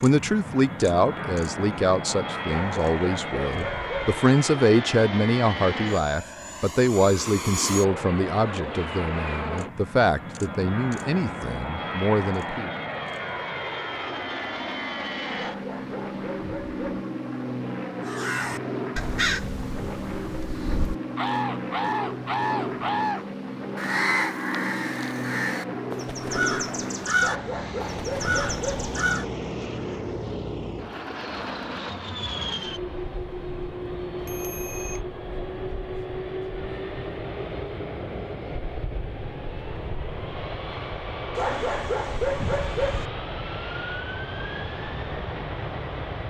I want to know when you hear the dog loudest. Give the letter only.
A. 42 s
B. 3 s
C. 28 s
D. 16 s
A.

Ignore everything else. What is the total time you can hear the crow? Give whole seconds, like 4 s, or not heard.
11 s.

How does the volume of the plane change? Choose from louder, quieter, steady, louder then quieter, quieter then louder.
steady.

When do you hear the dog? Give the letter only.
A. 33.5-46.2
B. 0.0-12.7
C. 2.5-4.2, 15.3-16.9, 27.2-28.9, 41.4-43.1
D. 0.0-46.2
C.